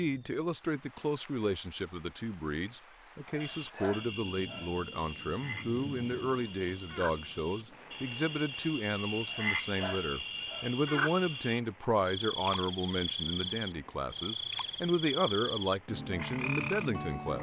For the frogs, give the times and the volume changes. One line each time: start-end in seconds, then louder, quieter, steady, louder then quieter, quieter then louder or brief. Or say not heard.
3.4-17.3 louder.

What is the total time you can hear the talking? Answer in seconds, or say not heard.
17 s.